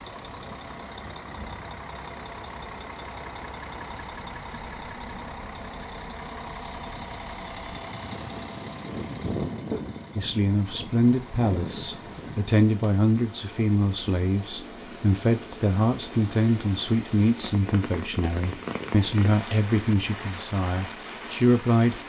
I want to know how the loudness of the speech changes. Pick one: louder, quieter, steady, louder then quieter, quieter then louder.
steady.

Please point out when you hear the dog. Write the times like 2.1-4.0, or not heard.
not heard.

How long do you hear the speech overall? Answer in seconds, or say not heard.
12 s.